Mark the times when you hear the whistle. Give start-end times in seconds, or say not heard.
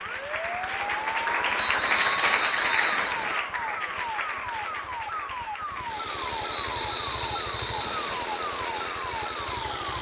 1.6-3.5, 6.5-8.3.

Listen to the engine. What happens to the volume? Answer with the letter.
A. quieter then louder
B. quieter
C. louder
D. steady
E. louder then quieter
D.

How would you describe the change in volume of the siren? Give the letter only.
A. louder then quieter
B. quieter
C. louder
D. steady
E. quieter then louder
D.